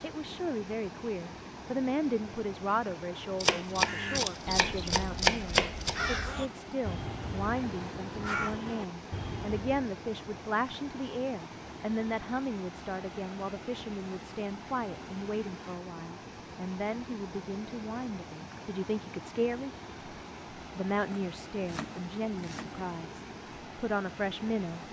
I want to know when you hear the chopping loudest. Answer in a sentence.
The loudest moment of the chopping is at 5 seconds.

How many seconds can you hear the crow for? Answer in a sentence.
You can hear the crow for 6 seconds altogether.